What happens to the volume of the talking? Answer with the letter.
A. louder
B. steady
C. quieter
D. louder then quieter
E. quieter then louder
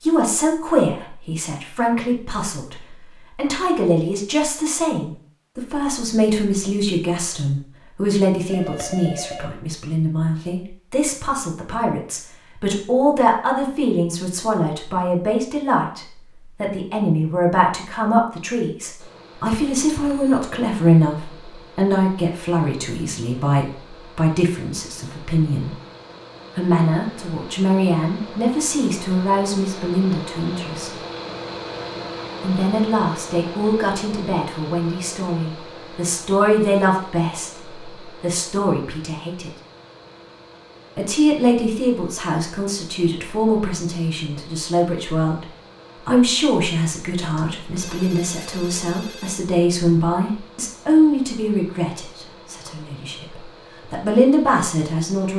B.